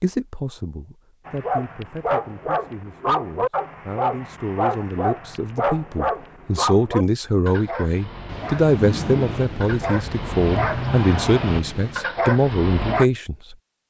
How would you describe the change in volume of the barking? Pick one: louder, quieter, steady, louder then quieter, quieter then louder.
quieter then louder.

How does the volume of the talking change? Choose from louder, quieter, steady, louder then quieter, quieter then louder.
louder.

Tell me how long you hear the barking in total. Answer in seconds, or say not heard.
12 s.